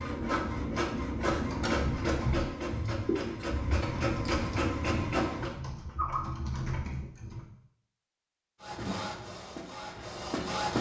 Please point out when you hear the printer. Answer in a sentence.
The printer can be heard from 0.0 to 5.5 s and from 8.6 to 10.7 s.